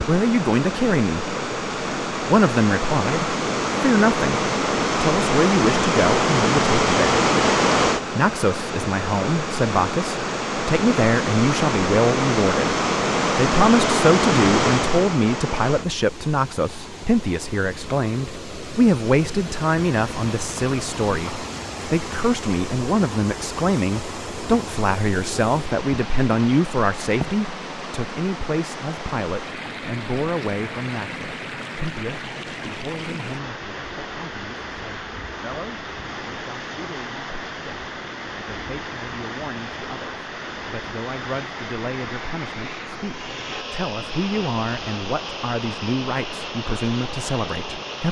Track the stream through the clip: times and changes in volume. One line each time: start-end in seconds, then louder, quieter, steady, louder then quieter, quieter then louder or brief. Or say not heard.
0.0-48.0 quieter.